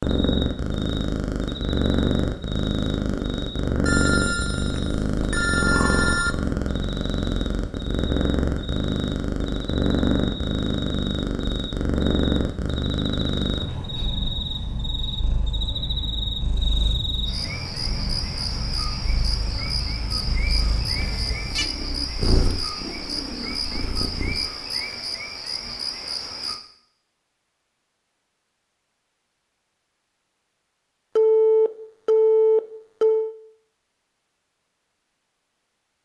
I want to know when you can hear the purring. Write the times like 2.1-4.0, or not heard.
0.0-24.5.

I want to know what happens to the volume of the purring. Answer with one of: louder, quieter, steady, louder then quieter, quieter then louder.
quieter.